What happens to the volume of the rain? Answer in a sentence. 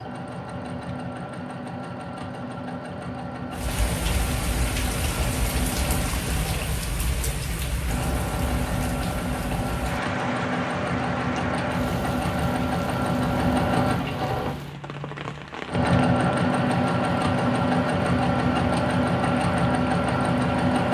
The volume of the rain goes down.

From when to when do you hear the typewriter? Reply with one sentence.
The typewriter can't be heard in this clip.